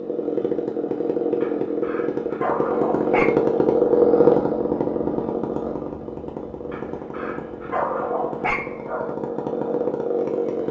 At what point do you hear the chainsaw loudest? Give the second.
4 s.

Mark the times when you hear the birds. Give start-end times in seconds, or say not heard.
not heard.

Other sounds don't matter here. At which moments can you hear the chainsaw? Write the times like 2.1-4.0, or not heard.
0.0-10.6.